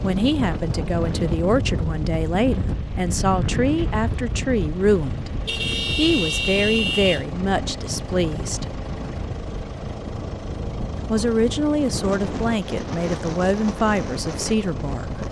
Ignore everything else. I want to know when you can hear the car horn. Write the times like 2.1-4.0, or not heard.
5.5-7.2.